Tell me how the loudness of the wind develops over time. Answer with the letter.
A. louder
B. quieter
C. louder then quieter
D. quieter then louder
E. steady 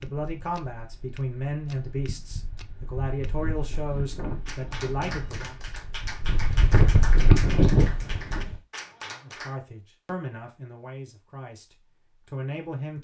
A.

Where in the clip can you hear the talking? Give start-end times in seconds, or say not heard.
0.0-5.5, 9.1-12.9.